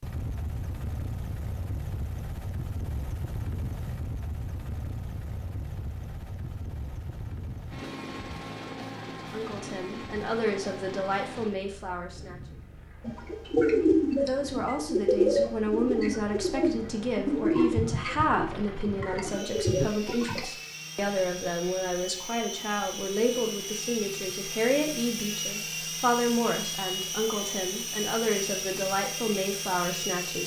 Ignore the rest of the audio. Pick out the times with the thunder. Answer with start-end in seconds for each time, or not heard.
not heard.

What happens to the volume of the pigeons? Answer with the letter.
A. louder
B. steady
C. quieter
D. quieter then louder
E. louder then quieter
C.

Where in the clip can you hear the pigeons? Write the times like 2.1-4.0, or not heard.
13.1-20.4.